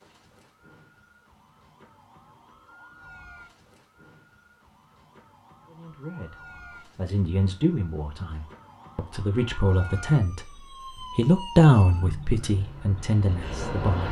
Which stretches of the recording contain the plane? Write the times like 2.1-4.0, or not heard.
12.4-14.0.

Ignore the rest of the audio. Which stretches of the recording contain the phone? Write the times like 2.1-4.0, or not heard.
not heard.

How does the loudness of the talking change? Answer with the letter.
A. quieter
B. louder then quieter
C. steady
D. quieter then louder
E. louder
B.